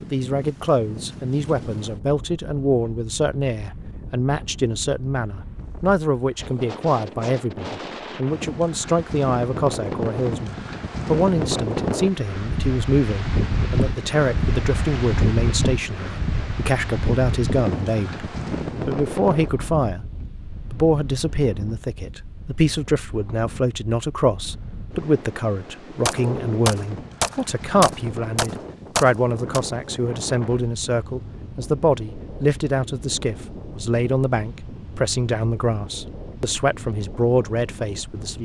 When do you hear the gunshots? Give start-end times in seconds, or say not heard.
26.1-29.6.